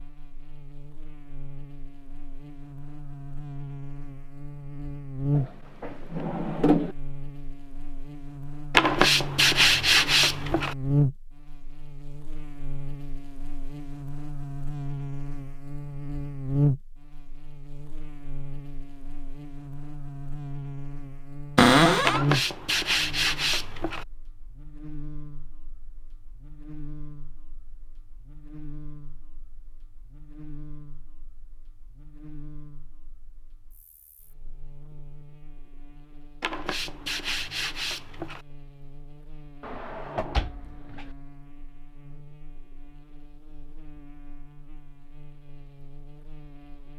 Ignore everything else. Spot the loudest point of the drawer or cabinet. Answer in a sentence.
The loudest moment of the drawer or cabinet is at 22 seconds.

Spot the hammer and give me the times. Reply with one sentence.
The hammer can't be heard in this clip.